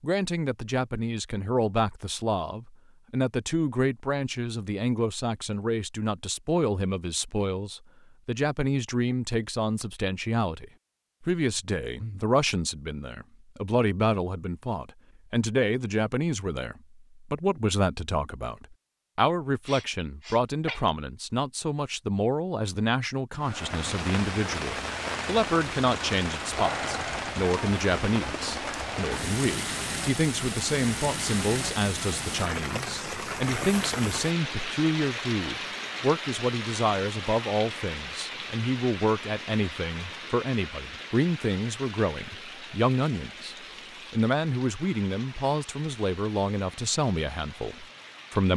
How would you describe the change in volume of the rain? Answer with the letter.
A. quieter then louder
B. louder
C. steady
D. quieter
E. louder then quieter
D.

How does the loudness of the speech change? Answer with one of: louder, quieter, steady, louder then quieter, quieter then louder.
steady.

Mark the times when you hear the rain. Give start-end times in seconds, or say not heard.
23.4-48.5.